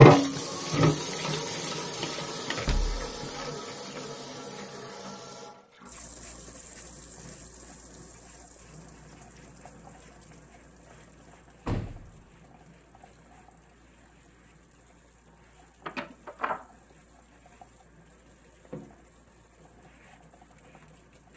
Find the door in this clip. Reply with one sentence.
The door can be heard from 2.5 to 3.0 s, from 11.7 to 12.2 s and from 15.8 to 16.6 s.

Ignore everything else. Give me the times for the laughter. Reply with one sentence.
The laughter can't be heard in this clip.